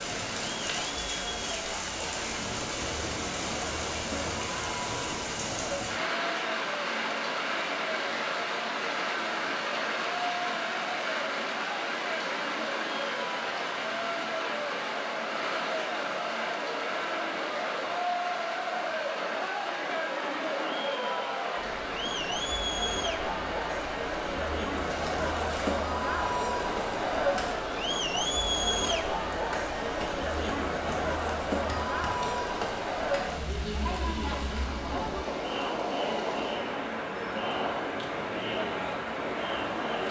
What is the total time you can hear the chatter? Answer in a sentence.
You can hear the chatter for 40 seconds altogether.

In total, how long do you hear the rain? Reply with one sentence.
The rain can be heard for 40 seconds in total.